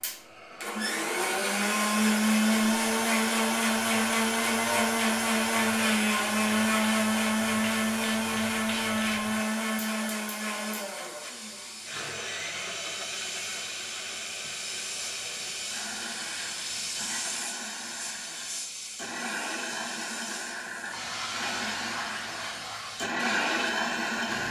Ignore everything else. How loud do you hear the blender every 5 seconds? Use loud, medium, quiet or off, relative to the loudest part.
loud, loud, medium, quiet, medium.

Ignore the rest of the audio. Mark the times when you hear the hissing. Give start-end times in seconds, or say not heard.
0.0-24.4.